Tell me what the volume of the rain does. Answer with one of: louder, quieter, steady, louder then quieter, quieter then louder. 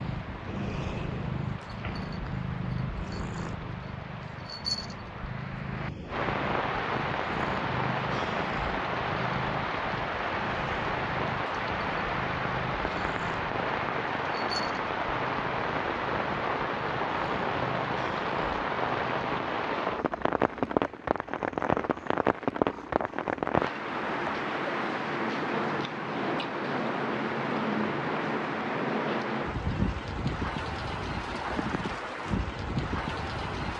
louder.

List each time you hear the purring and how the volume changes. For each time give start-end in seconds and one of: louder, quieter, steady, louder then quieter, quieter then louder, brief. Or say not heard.
0.0-24.5 quieter.